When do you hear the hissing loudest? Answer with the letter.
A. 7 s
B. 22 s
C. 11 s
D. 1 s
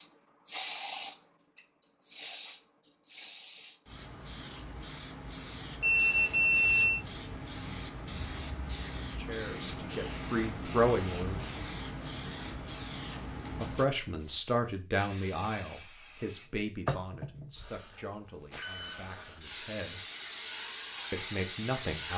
D.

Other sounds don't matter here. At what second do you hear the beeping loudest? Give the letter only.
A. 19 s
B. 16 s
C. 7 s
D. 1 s
C.